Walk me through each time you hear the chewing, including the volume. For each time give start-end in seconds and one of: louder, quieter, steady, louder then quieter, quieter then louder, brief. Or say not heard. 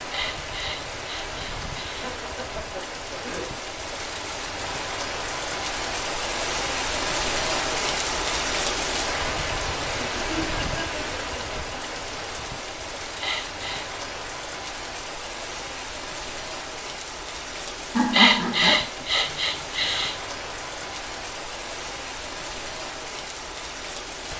not heard.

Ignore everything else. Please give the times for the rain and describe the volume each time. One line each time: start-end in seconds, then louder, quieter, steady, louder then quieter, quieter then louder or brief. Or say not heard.
0.0-24.3 louder then quieter.